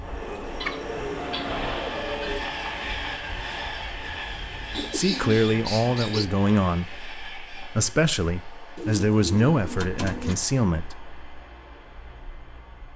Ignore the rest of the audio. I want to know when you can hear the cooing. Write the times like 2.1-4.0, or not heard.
0.2-2.5, 4.7-6.2, 8.8-10.4.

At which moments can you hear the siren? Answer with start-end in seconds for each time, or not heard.
not heard.